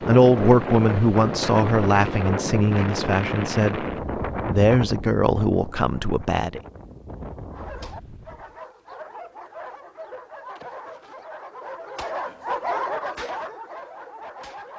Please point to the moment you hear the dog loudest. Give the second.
13 s.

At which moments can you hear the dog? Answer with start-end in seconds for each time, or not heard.
7.5-14.7.